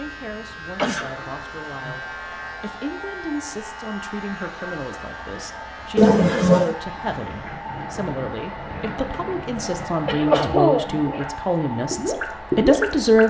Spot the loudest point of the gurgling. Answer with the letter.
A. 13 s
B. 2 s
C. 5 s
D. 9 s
A.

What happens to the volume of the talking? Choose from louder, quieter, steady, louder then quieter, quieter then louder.
louder.